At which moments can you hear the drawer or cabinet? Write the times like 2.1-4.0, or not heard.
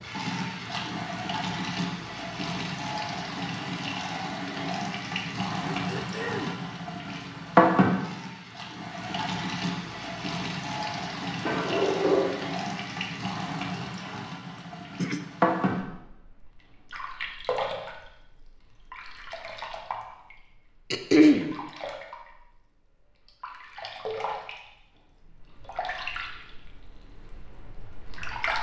11.4-12.3.